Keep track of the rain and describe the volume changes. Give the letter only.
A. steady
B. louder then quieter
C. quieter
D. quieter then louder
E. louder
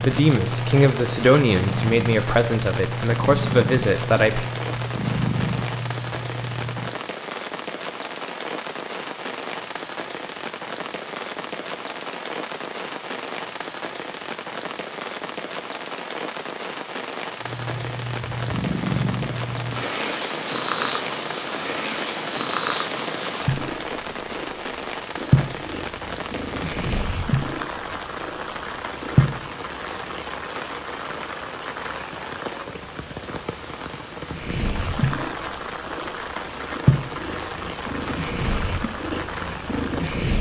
A.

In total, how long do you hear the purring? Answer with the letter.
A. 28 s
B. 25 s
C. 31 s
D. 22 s
B.